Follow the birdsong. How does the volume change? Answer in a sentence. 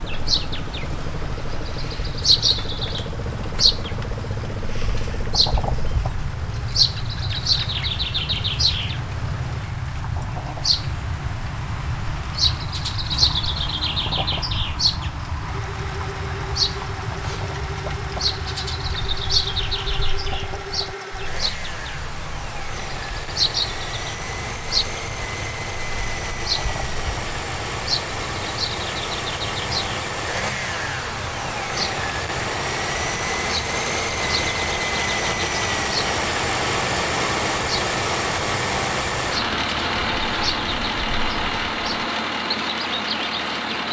The volume of the birdsong goes down.